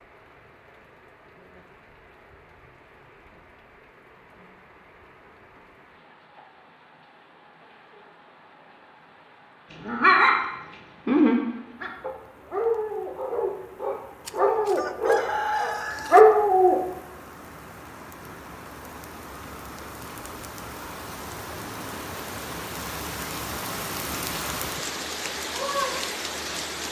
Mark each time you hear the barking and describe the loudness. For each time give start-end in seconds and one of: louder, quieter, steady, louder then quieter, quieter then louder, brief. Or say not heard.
9.8-16.8 quieter then louder.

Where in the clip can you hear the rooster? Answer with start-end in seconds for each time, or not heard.
14.2-16.2.